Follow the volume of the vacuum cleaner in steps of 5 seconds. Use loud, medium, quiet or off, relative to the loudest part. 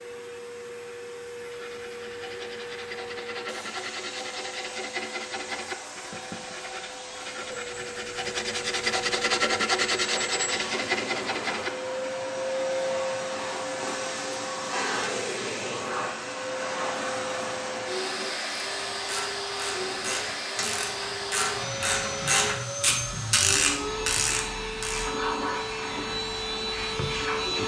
medium, medium, loud, loud, loud, loud.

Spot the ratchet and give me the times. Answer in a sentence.
You can hear the ratchet from 18.4 to 25.1 s.